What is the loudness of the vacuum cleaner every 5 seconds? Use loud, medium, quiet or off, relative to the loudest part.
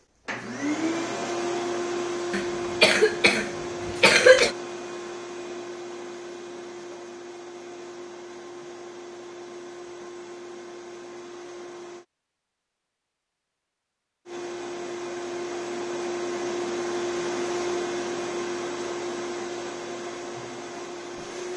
loud, medium, medium, loud, medium.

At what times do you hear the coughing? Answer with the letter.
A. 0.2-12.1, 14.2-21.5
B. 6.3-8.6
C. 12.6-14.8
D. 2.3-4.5
D.